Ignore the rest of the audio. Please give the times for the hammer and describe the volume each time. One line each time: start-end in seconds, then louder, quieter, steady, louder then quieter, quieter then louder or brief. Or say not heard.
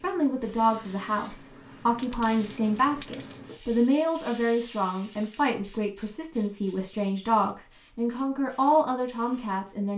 not heard.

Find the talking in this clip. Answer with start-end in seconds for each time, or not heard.
0.0-9.9.